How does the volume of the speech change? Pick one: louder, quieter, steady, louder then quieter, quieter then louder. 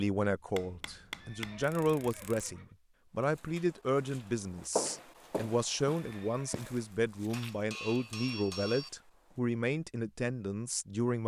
steady.